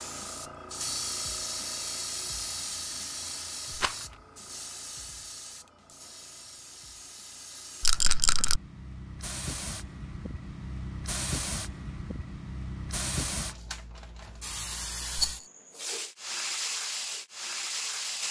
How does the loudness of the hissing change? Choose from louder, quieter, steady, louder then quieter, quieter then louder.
quieter then louder.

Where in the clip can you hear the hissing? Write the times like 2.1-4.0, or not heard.
0.0-18.2.